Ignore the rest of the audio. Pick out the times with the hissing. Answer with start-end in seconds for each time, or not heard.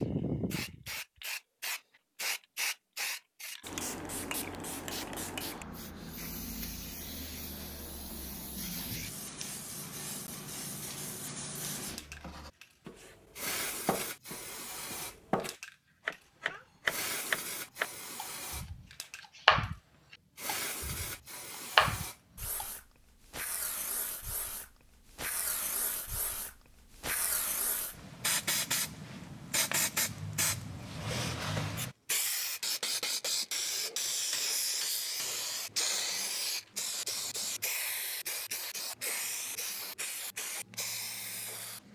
0.0-41.8.